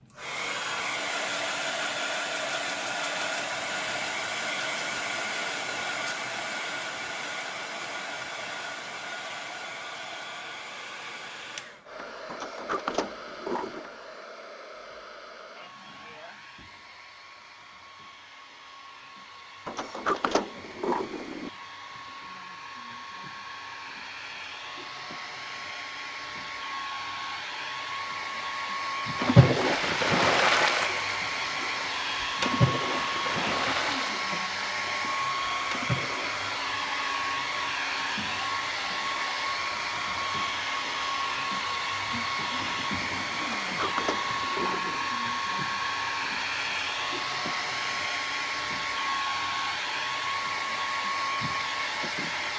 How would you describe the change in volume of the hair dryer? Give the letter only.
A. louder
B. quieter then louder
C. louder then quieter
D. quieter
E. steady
B.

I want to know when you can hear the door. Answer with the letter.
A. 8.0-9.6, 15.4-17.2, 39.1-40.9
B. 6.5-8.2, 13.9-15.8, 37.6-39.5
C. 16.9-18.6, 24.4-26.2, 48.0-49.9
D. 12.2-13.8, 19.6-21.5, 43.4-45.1
D.